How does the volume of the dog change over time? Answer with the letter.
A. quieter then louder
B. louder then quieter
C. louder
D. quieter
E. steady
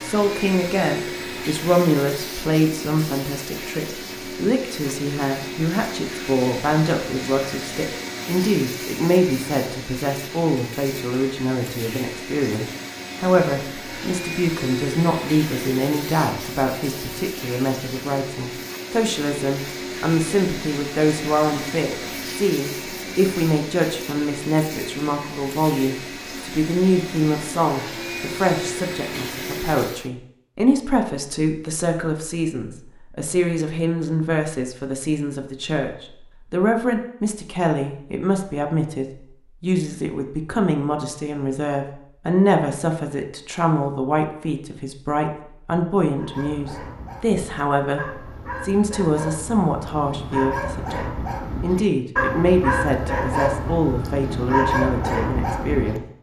C.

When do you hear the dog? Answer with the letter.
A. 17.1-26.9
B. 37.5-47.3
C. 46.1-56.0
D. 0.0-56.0
C.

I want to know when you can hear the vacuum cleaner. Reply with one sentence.
You can hear the vacuum cleaner from 0.0 to 30.1 s.